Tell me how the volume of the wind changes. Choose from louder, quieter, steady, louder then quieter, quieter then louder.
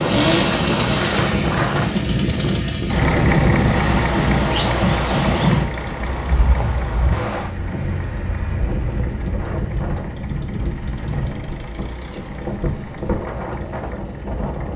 quieter.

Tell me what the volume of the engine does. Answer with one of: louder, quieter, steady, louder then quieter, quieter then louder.
quieter.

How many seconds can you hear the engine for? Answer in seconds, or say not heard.
15 s.